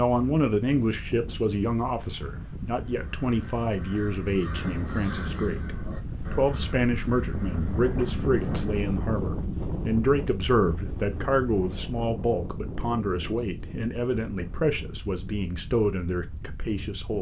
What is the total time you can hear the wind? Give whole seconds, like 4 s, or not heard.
17 s.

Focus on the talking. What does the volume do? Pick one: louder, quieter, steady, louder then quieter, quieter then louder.
steady.